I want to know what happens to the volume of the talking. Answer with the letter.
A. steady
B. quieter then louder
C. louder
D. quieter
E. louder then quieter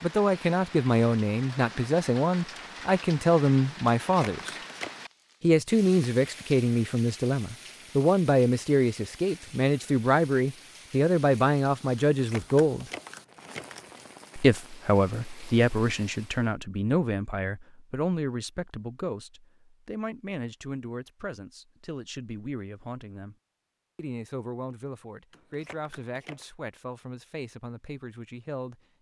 D.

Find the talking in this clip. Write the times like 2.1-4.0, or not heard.
0.0-4.5, 5.4-12.8, 14.3-23.4, 23.9-28.8.